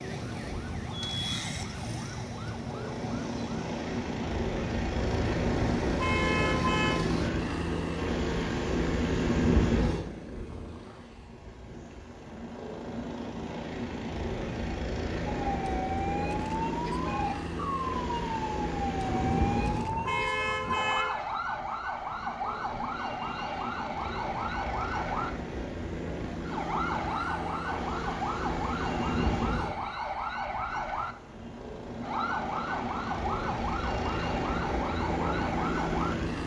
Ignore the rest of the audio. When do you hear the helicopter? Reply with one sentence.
You can hear the helicopter from 0.0 to 36.4 s.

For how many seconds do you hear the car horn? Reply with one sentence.
You can hear the car horn for 4 seconds altogether.